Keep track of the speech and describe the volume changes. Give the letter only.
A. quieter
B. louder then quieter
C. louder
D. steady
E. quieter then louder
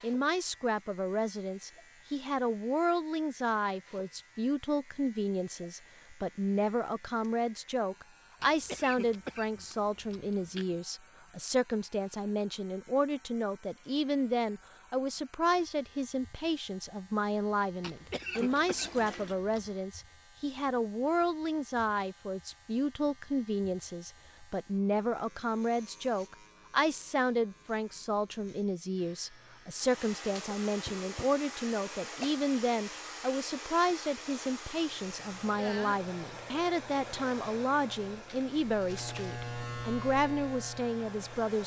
D.